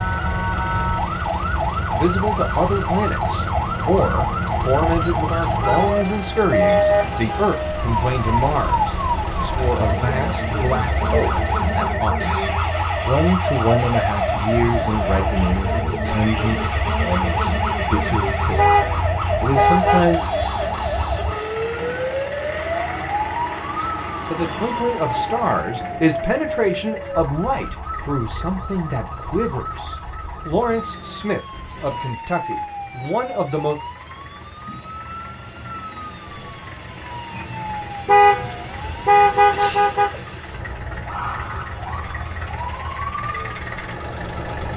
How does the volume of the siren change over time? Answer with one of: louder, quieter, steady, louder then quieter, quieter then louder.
quieter.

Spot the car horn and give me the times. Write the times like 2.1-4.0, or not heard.
5.6-7.5, 18.6-20.1, 38.0-40.2.